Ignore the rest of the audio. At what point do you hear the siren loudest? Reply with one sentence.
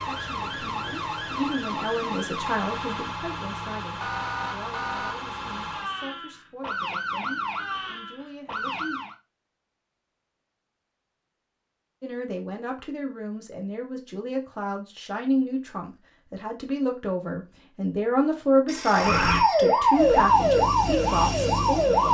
The loudest moment of the siren is at 20 seconds.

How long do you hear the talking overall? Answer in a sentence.
The talking can be heard for 19 seconds in total.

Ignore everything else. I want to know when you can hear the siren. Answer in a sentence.
You can hear the siren from 0.0 to 9.2 s and from 18.9 to 22.1 s.